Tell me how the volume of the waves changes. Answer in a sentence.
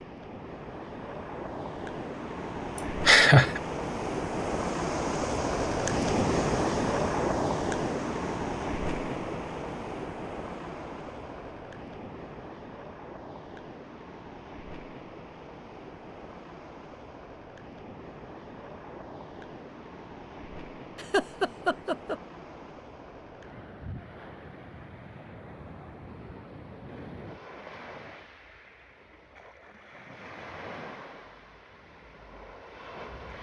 The loudness of the waves goes down.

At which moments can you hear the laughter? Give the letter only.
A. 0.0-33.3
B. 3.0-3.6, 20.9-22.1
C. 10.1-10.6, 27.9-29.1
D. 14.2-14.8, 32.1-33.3
B.